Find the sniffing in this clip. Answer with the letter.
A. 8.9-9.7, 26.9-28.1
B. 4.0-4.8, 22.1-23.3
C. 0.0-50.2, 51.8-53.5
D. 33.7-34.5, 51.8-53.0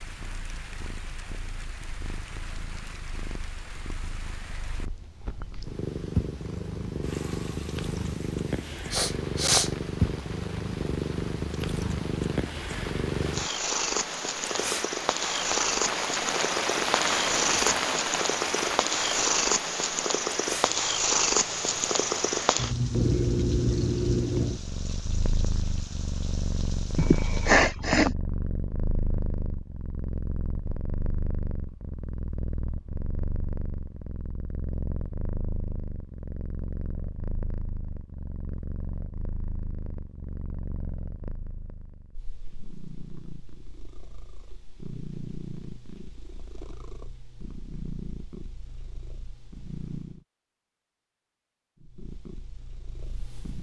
A.